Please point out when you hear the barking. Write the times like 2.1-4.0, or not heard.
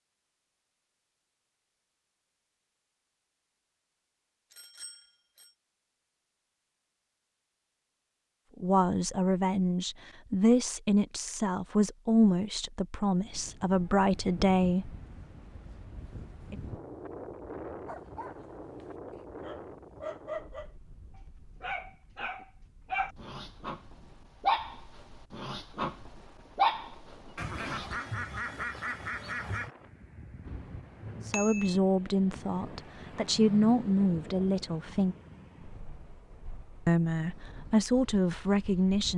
17.9-20.7, 21.6-27.9.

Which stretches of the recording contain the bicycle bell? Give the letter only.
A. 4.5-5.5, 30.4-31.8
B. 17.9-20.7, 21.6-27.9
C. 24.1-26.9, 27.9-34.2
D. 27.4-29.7
A.